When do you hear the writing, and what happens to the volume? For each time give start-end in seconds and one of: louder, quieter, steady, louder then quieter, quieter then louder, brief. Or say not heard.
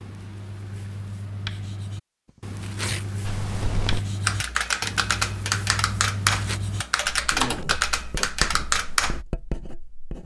0.0-10.2 steady.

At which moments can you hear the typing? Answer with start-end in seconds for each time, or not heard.
3.2-9.2.